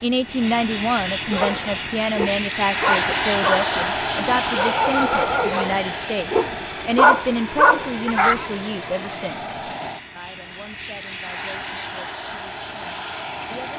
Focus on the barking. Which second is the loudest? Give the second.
7 s.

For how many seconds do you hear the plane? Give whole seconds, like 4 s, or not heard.
14 s.